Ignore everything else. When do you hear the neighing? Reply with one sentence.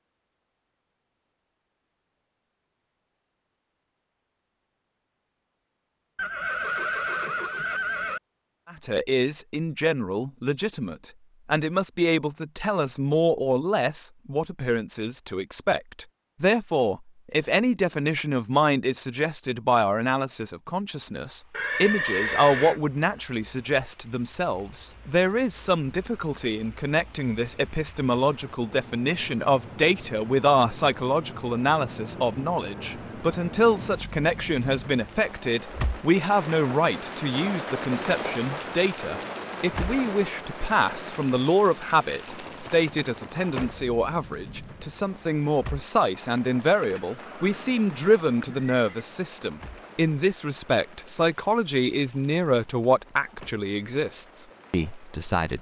You can hear the neighing from 6.2 to 8.2 s, from 21.5 to 22.8 s and from 46.5 to 49.0 s.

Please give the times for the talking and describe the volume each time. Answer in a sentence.
You can hear the talking from 8.7 to 55.5 s, at a steady volume.